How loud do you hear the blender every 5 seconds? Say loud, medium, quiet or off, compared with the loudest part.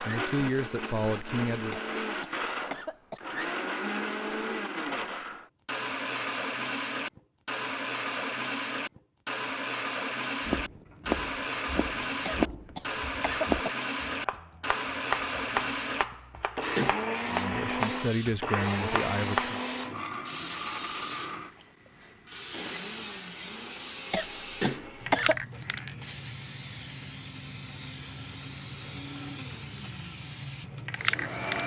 loud, loud, loud, loud, medium, quiet, medium.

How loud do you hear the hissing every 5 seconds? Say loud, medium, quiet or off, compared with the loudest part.
off, off, off, loud, loud, loud, loud.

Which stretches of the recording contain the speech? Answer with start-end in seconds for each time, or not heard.
0.0-1.8, 17.2-19.6.